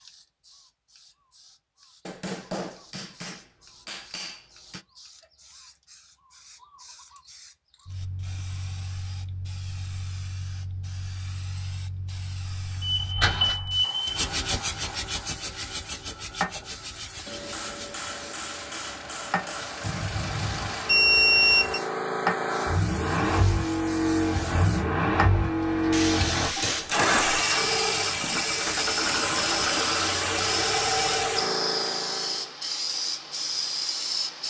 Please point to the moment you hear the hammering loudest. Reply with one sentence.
The volume of the hammering peaks at 27 seconds.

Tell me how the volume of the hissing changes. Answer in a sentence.
The volume of the hissing goes up.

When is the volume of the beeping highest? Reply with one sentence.
The volume of the beeping peaks at 21 seconds.